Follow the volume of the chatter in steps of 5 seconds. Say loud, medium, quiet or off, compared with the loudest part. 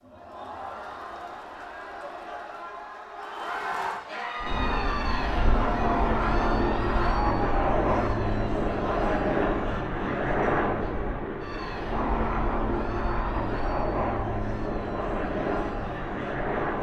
loud, loud, medium, medium.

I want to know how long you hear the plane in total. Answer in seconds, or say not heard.
12 s.